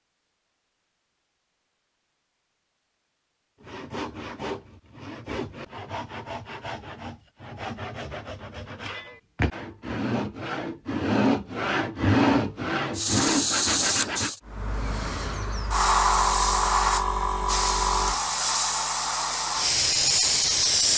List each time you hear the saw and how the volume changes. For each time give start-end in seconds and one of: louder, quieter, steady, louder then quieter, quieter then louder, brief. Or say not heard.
3.6-14.3 louder.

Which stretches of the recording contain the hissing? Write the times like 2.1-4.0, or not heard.
12.9-20.9.